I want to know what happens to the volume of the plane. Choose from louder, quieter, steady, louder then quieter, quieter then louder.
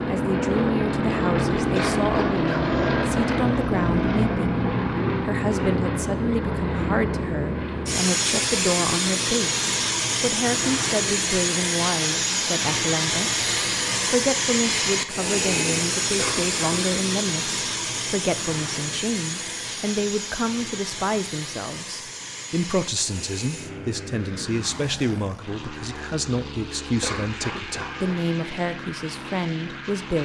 quieter.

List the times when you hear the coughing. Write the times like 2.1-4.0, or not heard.
1.8-2.9, 16.1-16.8, 27.0-28.2.